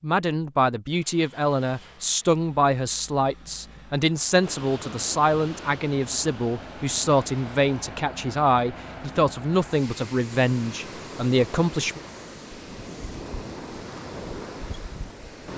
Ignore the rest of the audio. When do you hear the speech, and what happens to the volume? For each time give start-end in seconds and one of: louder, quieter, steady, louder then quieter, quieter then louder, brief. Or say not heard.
0.0-12.0 steady.